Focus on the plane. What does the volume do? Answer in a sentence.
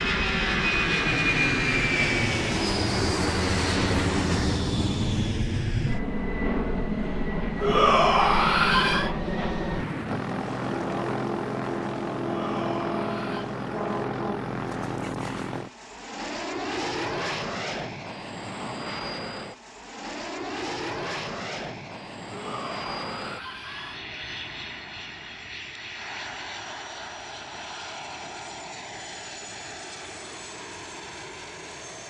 The loudness of the plane goes down.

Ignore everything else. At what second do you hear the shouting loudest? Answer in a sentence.
The volume of the shouting peaks at 8 seconds.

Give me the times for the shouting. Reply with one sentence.
You can hear the shouting from 7.6 to 9.1 s, from 12.2 to 13.5 s and from 22.3 to 24.0 s.